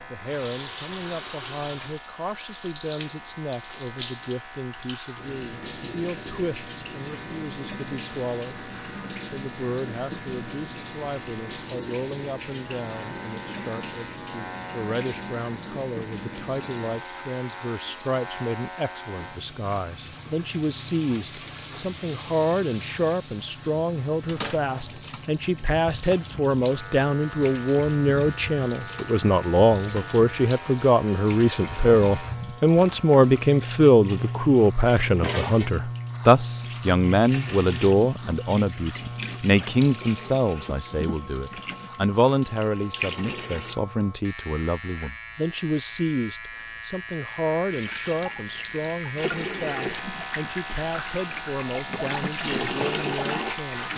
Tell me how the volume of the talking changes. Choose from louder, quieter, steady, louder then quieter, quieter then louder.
louder then quieter.